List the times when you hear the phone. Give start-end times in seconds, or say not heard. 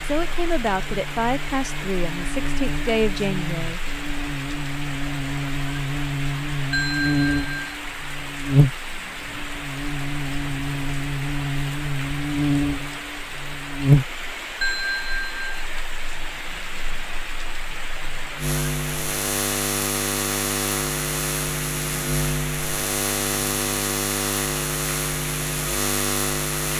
6.7-7.8, 14.6-15.5.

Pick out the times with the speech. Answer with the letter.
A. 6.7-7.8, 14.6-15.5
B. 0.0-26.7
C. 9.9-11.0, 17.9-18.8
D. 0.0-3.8
D.